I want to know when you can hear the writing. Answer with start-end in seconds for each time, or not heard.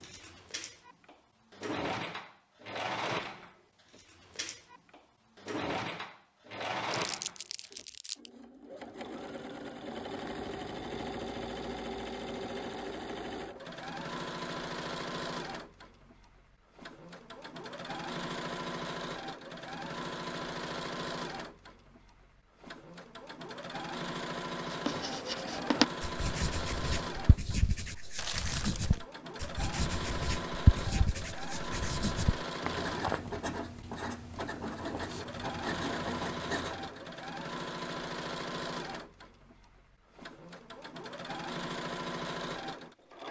24.7-37.0.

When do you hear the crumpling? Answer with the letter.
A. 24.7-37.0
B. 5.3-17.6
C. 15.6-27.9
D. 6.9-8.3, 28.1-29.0
D.